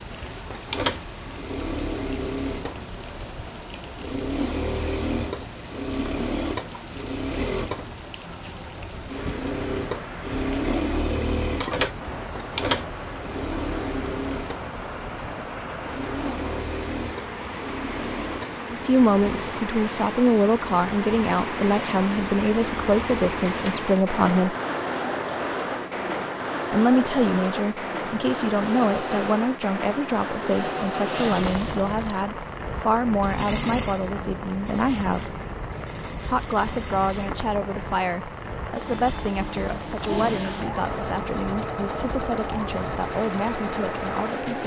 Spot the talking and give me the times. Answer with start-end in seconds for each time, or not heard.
18.7-24.6, 26.7-35.4, 36.2-44.6.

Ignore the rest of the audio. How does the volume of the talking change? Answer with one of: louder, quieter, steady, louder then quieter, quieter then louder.
quieter.